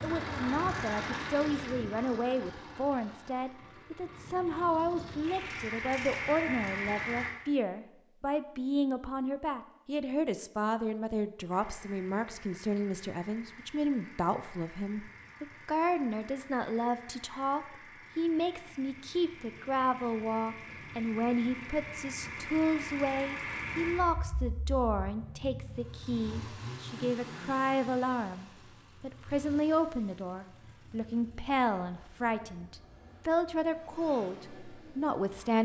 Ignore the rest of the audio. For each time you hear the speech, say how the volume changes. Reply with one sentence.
The speech can be heard from 0.0 to 35.6 s, at a steady volume.